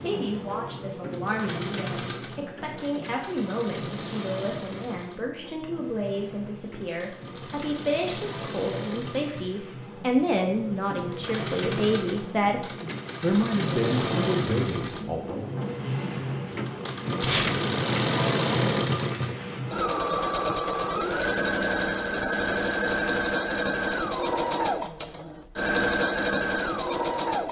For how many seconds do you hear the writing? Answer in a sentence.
The writing can't be heard in this clip.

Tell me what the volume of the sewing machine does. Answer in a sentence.
The volume of the sewing machine goes up.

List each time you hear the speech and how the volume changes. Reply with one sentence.
The speech can be heard from 0.0 to 12.6 s, getting louder; and briefly from 13.2 to 15.6 s.